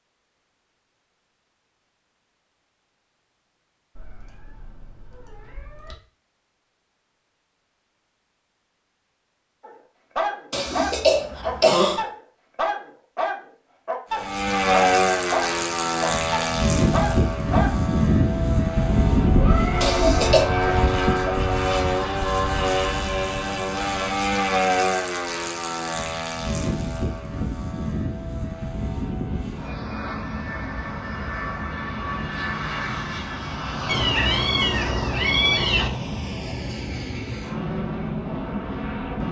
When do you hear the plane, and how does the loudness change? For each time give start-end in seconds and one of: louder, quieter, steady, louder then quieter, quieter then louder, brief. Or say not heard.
14.1-39.2 quieter.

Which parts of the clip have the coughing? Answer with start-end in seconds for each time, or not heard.
10.5-12.0, 19.8-20.5.